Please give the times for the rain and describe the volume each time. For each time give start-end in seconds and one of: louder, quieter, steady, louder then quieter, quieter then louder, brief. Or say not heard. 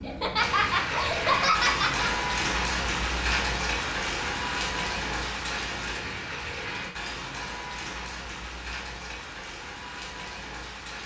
0.0-11.0 quieter.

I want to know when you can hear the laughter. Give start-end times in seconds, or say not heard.
0.0-2.1.